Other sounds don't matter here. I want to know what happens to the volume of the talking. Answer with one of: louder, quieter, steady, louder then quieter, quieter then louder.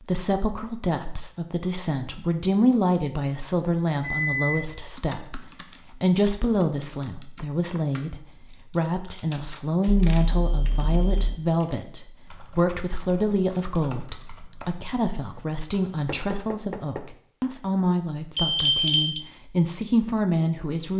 steady.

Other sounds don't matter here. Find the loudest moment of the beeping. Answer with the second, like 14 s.
19 s.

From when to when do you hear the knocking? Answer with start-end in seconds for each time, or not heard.
7.0-7.8, 16.1-17.1.